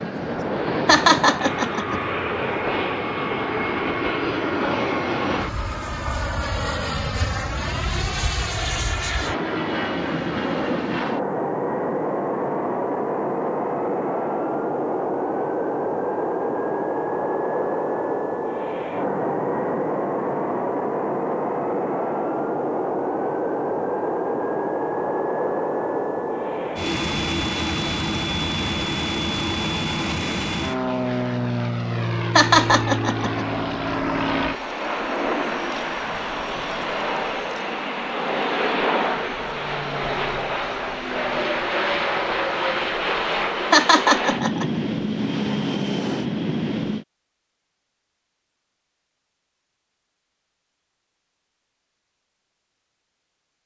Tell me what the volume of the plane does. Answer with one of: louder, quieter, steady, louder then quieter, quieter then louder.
steady.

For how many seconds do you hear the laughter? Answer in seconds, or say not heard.
3 s.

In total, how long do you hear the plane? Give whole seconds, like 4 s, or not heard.
47 s.